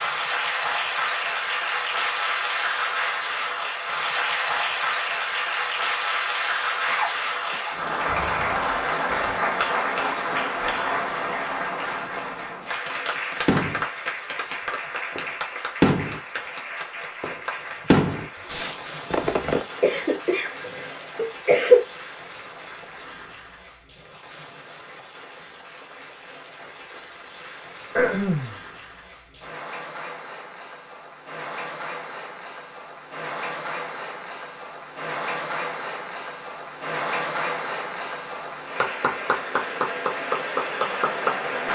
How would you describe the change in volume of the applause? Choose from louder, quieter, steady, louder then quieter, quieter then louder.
quieter then louder.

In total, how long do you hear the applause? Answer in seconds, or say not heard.
42 s.